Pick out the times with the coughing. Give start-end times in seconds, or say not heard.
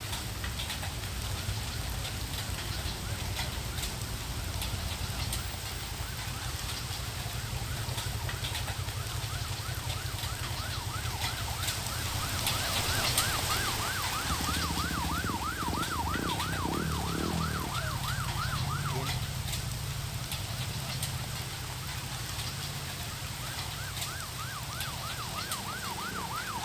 not heard.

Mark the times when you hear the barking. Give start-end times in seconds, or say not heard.
not heard.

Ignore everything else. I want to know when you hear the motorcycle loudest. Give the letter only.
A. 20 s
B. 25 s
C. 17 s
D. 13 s
C.